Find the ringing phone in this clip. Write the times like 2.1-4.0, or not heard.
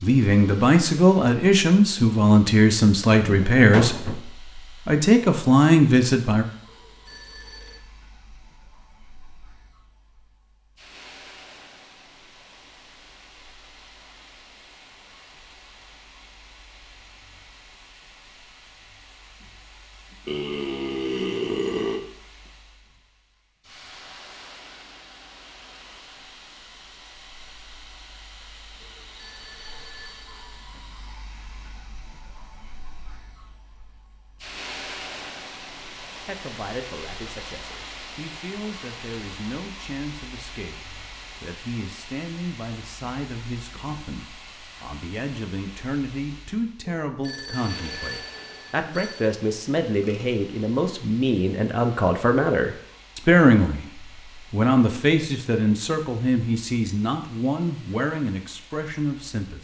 6.7-7.8, 28.8-30.7, 47.0-49.3.